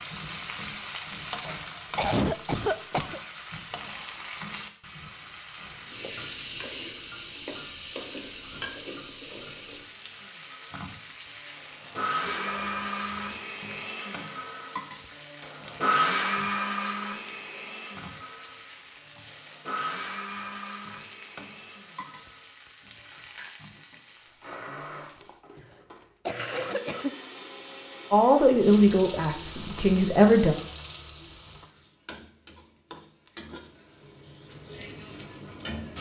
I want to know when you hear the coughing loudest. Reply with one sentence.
The loudest moment of the coughing is at 2 seconds.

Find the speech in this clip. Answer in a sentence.
The speech can be heard from 28.1 to 30.6 s.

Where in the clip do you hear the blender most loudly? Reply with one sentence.
The loudest moment of the blender is at 16 seconds.